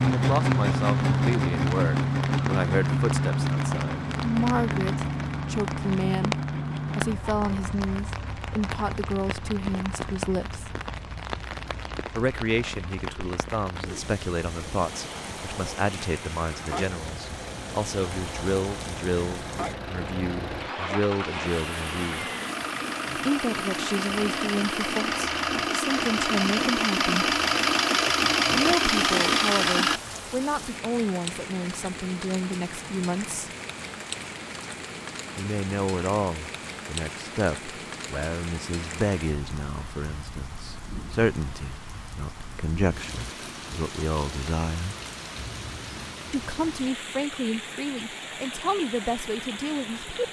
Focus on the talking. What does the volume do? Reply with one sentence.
The loudness of the talking stays about the same.